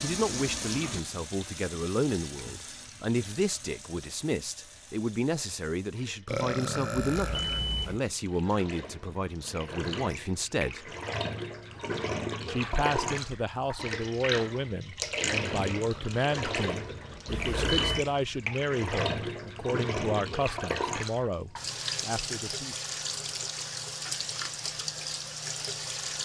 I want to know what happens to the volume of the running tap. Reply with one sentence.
The loudness of the running tap goes up.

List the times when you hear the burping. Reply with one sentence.
You can hear the burping from 6.2 to 7.6 s and from 15.8 to 16.2 s.